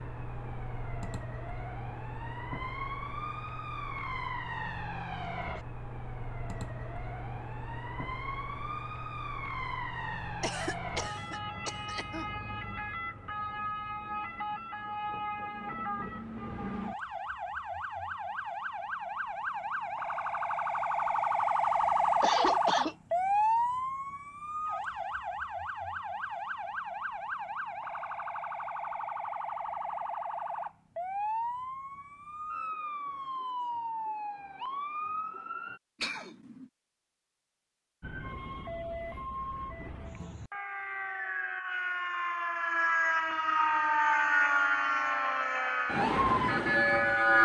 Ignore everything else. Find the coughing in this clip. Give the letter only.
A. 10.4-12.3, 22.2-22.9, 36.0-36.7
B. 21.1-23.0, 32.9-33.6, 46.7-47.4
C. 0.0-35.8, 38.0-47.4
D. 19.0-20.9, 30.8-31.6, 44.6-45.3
A.